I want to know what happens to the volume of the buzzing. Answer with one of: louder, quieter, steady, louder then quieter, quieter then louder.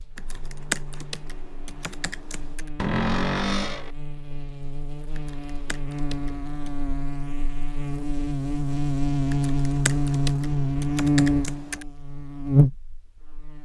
louder.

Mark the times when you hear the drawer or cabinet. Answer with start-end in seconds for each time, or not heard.
2.8-3.9.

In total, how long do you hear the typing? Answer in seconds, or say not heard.
7 s.